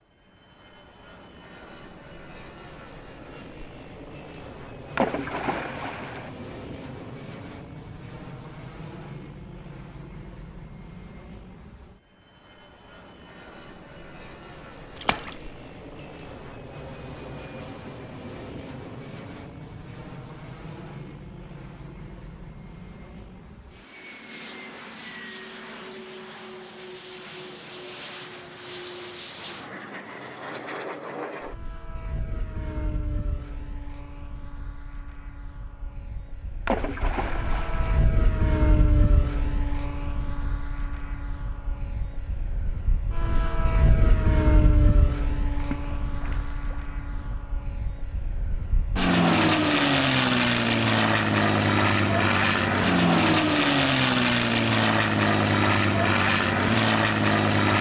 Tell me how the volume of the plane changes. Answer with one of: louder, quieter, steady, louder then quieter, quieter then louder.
louder.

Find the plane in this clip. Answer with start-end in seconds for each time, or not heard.
0.1-57.7.